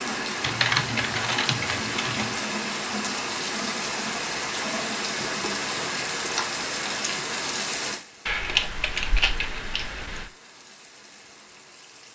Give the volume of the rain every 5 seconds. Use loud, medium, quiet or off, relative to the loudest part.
loud, loud, quiet.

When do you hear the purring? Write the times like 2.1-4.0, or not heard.
not heard.